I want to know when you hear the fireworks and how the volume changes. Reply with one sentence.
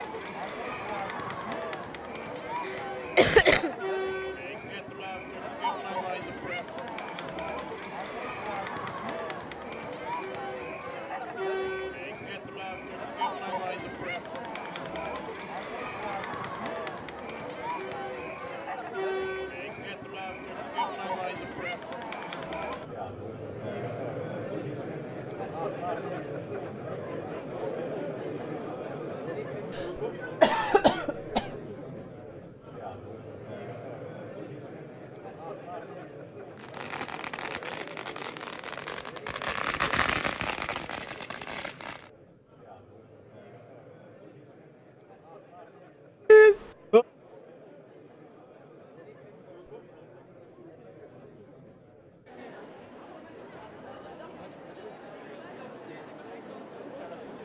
The fireworks can be heard from 36.5 to 42.1 s, getting louder then quieter.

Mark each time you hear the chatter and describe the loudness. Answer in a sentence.
You can hear the chatter from 0.0 to 57.3 s, getting quieter.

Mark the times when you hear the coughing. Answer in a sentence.
The coughing can be heard from 3.1 to 3.7 s, from 30.4 to 31.4 s and from 46.2 to 47.0 s.